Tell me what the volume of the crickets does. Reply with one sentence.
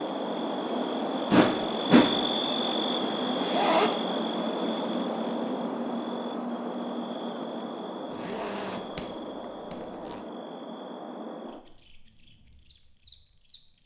The loudness of the crickets goes down.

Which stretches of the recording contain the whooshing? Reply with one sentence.
You can hear the whooshing from 1.3 to 2.5 s.